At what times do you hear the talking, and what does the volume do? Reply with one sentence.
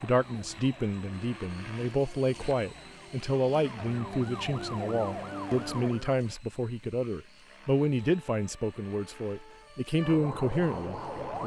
You can hear the talking from 0.0 to 11.4 s, at a steady volume.